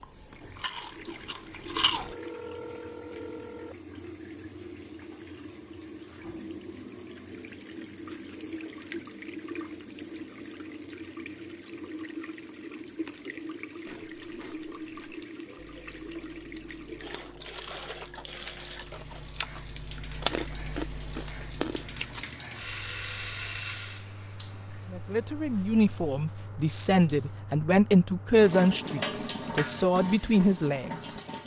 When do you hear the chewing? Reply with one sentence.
You can hear the chewing from 0.0 to 2.1 s and from 12.9 to 22.2 s.